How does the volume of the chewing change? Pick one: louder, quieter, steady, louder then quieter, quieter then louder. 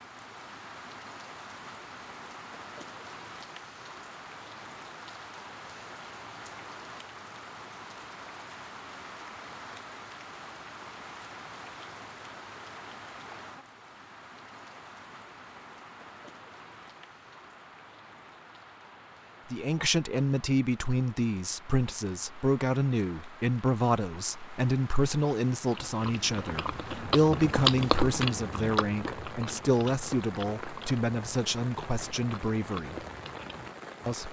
louder then quieter.